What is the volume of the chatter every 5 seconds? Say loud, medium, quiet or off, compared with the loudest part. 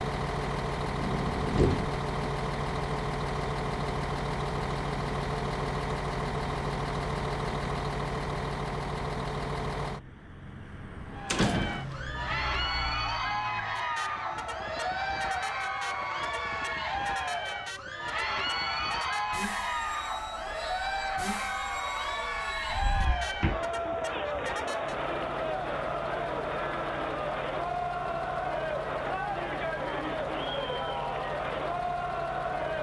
off, off, loud, loud, loud, loud, loud.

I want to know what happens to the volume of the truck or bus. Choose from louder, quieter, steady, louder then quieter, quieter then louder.
quieter.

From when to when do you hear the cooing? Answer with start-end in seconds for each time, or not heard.
not heard.